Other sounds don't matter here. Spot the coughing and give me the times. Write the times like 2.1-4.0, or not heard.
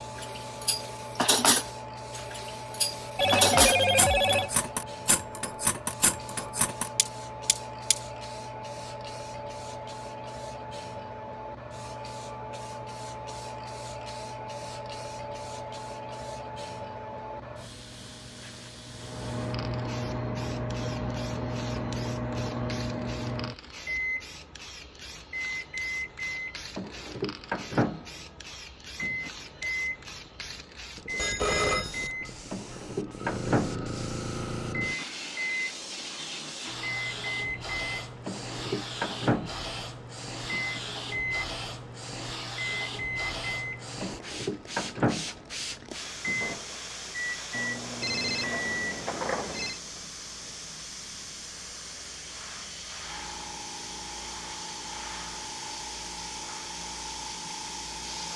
not heard.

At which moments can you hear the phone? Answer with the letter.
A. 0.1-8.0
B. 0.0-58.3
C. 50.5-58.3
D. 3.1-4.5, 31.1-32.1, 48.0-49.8
D.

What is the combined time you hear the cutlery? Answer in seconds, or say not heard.
8 s.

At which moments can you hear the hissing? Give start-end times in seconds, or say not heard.
0.0-58.3.